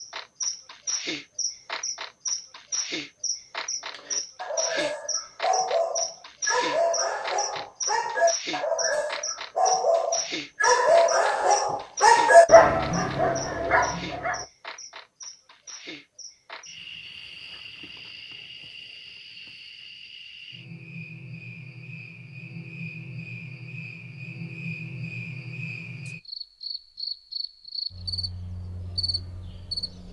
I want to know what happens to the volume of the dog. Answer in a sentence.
The volume of the dog goes up.